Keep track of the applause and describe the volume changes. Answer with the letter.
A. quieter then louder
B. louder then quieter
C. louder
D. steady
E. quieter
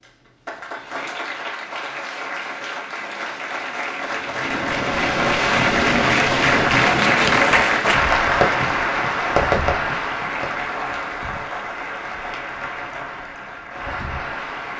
B.